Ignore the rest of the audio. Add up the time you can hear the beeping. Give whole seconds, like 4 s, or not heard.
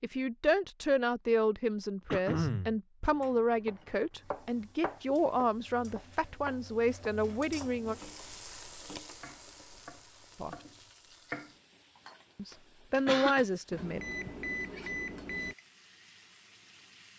2 s.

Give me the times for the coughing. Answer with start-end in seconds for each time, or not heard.
2.1-2.8, 12.5-13.4.